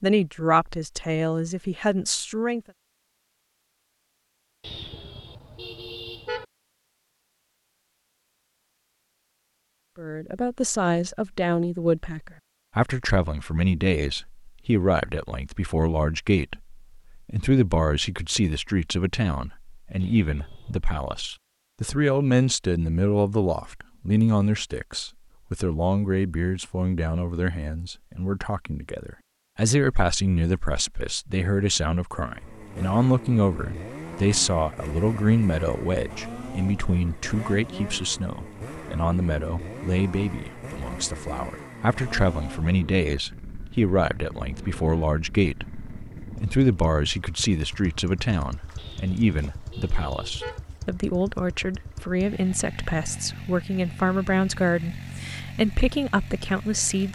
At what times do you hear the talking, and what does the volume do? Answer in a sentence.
The talking can be heard briefly from 0.0 to 2.6 s; and from 9.9 to 57.1 s, at a steady volume.